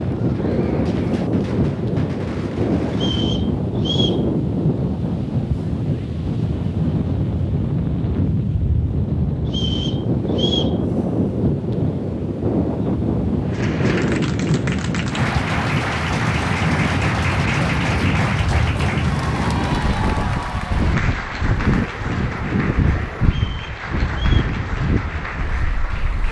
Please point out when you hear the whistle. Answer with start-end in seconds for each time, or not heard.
2.9-4.2, 9.4-10.8, 23.2-24.4.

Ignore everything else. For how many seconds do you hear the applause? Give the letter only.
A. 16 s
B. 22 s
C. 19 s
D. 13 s
D.